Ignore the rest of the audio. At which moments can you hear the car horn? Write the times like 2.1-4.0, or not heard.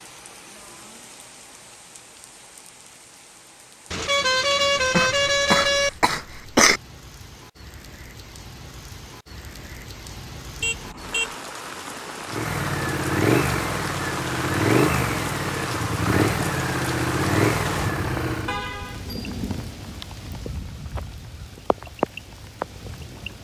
3.9-5.9, 10.6-11.3, 18.4-19.1.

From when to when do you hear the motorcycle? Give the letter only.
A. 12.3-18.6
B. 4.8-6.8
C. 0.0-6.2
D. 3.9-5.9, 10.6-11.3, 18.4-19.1
A.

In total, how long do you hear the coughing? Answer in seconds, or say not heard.
2 s.